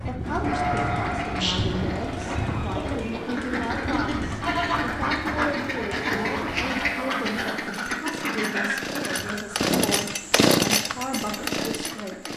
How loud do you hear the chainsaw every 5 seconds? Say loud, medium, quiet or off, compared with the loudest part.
quiet, medium, loud.